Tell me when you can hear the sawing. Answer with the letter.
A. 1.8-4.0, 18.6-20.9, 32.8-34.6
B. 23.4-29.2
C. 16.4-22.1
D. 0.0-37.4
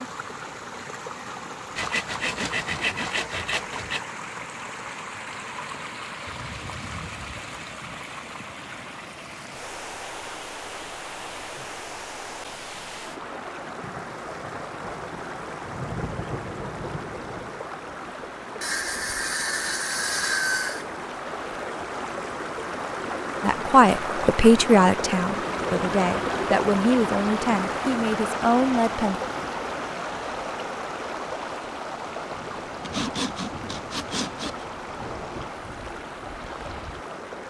A.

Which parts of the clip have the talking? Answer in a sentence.
The talking can be heard from 23.4 to 29.2 s.